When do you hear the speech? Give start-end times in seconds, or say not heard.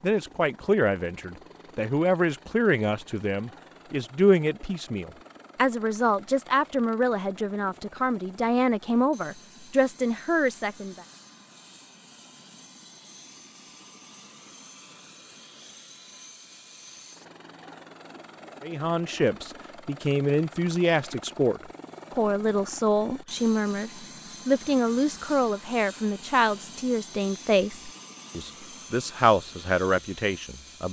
0.0-11.0, 18.6-30.8.